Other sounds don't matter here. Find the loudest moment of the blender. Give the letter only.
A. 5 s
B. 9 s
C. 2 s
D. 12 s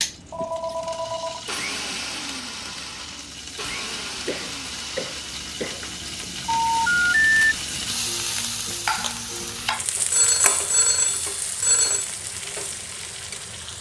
C.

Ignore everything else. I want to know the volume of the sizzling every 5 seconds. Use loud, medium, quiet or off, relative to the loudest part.
medium, loud, loud.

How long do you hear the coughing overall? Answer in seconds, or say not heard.
2 s.